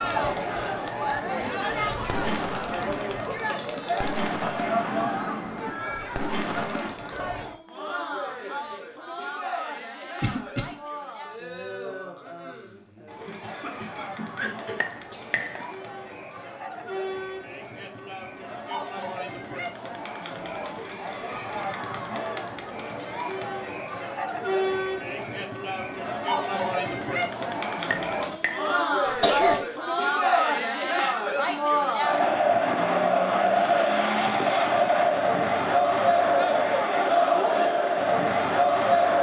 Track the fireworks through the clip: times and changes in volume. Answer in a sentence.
You can hear the fireworks from 1.7 to 6.9 s, getting quieter then louder.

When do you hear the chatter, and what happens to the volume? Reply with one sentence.
You can hear the chatter from 0.0 to 39.1 s, getting quieter then louder.